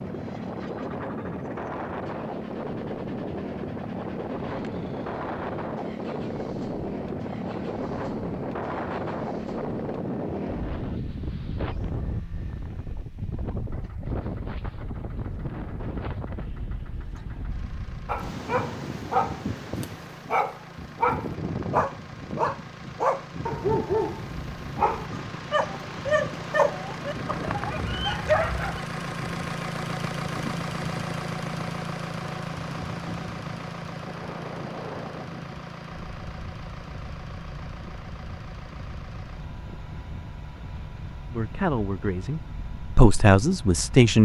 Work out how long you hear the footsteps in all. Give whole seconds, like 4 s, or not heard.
not heard.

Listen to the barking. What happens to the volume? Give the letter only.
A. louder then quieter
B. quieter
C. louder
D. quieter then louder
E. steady
E.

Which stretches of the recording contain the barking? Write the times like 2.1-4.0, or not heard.
18.1-28.8.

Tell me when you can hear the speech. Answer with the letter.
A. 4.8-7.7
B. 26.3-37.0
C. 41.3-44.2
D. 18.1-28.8
C.